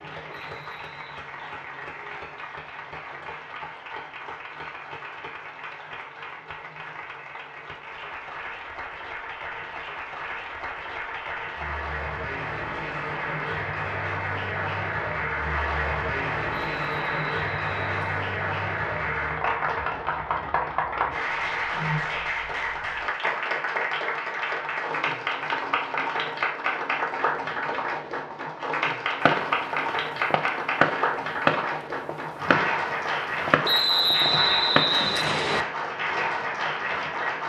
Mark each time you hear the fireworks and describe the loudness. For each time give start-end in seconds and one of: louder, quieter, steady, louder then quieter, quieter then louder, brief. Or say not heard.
29.2-35.1 louder then quieter.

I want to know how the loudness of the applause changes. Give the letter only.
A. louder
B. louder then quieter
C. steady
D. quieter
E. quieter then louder
A.